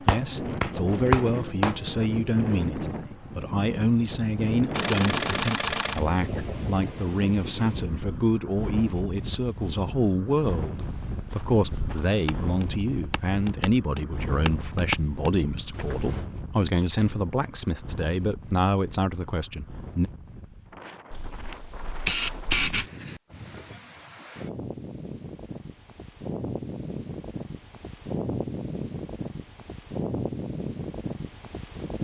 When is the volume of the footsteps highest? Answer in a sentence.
The volume of the footsteps peaks at 15 seconds.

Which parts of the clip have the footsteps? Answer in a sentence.
The footsteps can be heard from 10.8 to 16.2 s.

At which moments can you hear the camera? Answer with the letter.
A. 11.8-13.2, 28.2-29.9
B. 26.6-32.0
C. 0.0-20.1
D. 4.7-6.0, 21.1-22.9
D.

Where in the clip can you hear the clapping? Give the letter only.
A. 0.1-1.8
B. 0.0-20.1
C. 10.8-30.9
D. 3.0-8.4
A.